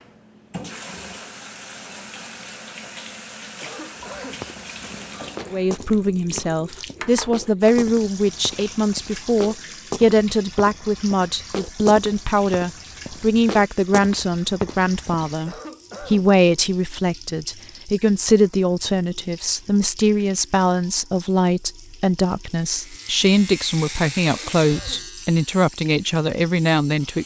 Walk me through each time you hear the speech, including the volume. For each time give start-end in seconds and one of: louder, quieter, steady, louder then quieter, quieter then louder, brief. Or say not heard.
5.5-27.2 steady.